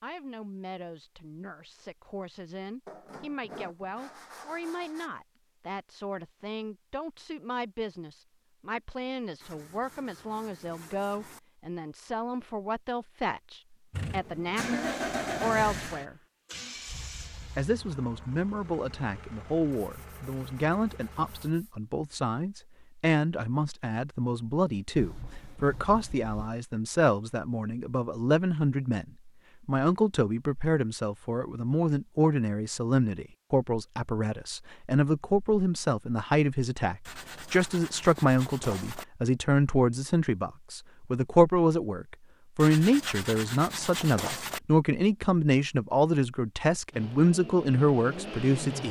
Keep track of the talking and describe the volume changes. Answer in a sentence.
The volume of the talking goes up.